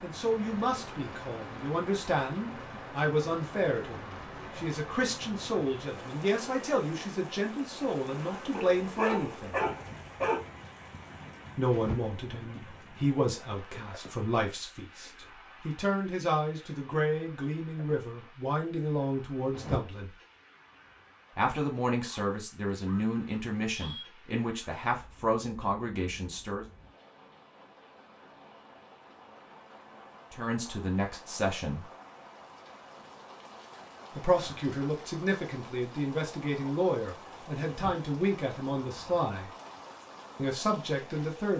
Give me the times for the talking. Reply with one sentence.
The talking can be heard from 0.0 to 9.6 s, from 11.6 to 20.1 s, from 21.4 to 26.6 s, from 30.3 to 31.9 s, from 34.1 to 39.5 s and from 40.4 to 41.5 s.